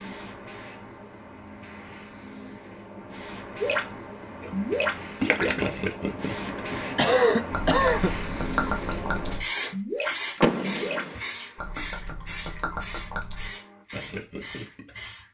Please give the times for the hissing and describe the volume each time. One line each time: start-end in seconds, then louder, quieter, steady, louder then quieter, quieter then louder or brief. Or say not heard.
0.0-15.2 louder then quieter.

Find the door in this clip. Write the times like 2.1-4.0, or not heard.
10.4-11.2.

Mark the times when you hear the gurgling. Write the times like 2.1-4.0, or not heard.
3.6-14.9.